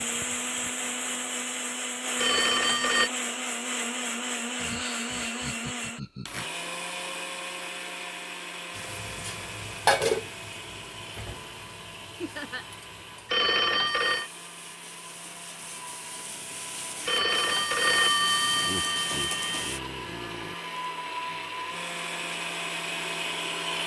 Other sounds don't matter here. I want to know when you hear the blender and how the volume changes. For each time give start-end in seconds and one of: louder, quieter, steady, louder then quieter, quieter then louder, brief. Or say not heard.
0.0-23.8 quieter then louder.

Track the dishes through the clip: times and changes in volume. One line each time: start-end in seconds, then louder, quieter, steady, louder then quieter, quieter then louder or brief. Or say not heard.
not heard.